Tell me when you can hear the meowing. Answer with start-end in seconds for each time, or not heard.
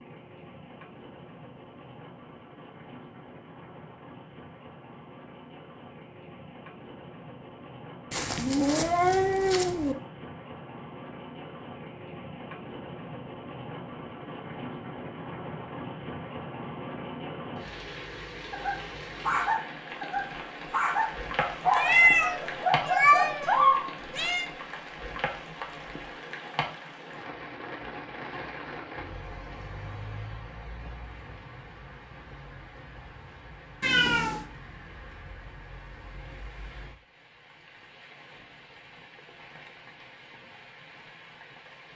8.1-9.9, 21.8-24.4, 33.8-34.5.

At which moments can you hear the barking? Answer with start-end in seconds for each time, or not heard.
18.5-23.9.